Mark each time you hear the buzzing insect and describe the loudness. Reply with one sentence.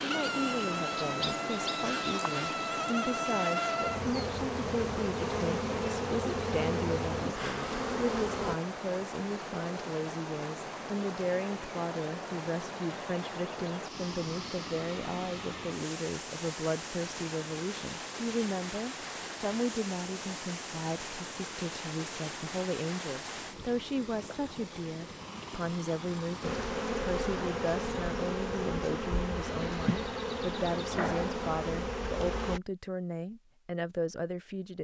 The buzzing insect can be heard from 0.0 to 8.6 s, at a steady volume; and from 26.4 to 32.6 s, at a steady volume.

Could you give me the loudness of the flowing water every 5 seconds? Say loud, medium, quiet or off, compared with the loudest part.
loud, loud, loud, loud, loud, loud, off.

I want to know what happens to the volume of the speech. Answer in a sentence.
The volume of the speech stays about the same.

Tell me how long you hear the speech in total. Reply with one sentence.
You can hear the speech for 35 seconds altogether.